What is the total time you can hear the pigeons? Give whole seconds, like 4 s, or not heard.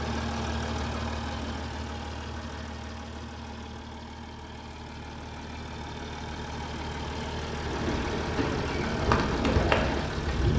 3 s.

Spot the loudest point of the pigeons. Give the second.
10 s.